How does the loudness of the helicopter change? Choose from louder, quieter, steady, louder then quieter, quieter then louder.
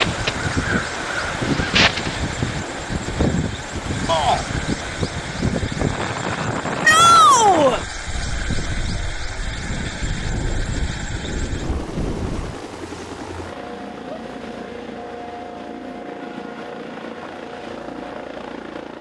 steady.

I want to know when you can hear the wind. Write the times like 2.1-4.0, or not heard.
0.0-12.6.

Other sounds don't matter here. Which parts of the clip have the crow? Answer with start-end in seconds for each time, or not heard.
0.0-2.5.